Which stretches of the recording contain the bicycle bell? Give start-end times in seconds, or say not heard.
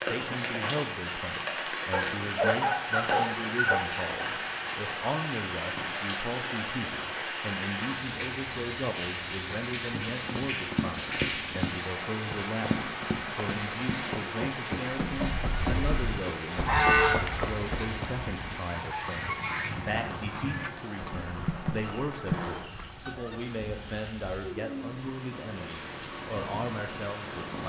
not heard.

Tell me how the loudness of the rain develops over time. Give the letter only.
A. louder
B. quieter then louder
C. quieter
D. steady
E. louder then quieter
C.